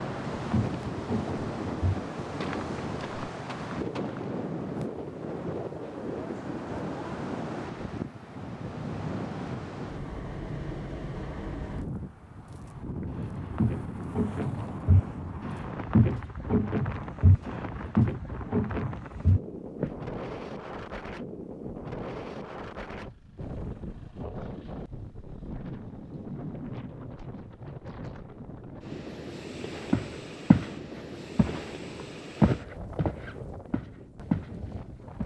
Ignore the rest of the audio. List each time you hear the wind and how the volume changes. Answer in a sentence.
You can hear the wind from 0.0 to 35.2 s, getting quieter.